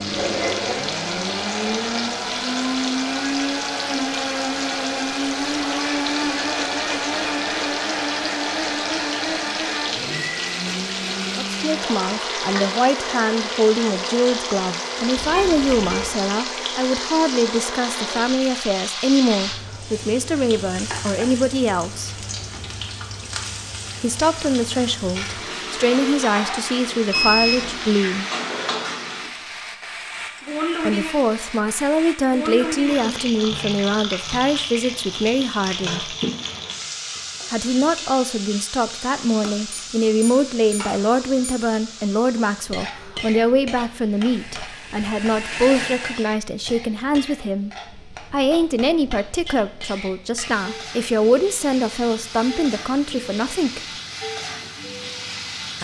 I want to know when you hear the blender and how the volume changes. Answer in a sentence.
The blender can be heard from 0.0 to 18.4 s, getting quieter; and briefly from 44.1 to 46.4 s.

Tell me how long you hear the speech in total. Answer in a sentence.
The speech can be heard for 36 seconds in total.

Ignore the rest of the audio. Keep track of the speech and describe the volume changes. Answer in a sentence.
The loudness of the speech stays about the same.